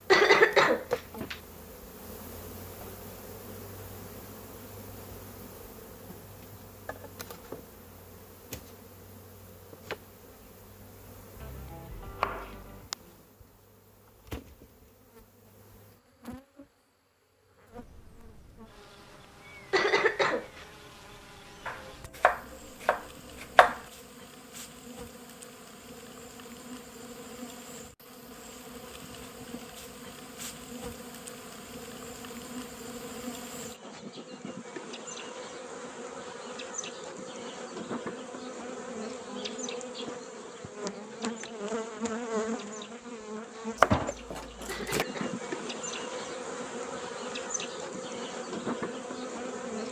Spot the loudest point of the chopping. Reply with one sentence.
The loudest moment of the chopping is at 44 seconds.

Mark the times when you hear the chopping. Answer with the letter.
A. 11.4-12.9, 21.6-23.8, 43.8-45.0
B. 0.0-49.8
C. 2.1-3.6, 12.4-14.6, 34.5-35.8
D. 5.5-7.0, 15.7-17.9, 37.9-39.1
A.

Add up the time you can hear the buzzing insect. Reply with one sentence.
You can hear the buzzing insect for 50 seconds altogether.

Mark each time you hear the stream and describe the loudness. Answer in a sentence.
You can't hear the stream here.